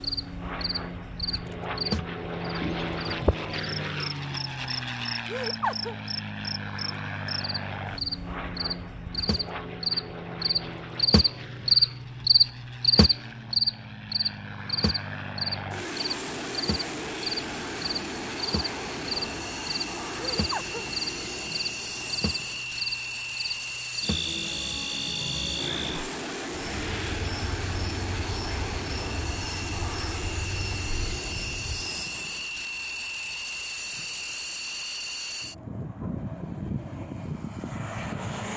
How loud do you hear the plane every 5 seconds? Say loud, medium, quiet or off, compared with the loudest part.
loud, loud, medium, loud, loud, loud, loud, loud.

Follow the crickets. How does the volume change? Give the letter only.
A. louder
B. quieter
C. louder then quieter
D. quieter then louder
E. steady
C.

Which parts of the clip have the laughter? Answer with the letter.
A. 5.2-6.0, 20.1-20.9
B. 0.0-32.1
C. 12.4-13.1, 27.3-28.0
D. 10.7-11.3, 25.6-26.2
A.